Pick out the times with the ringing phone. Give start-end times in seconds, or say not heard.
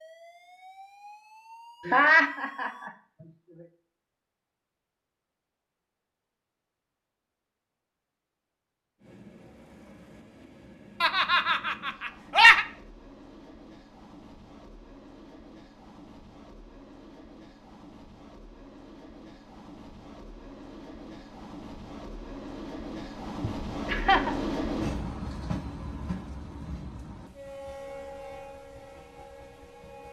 not heard.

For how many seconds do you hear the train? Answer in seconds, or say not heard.
21 s.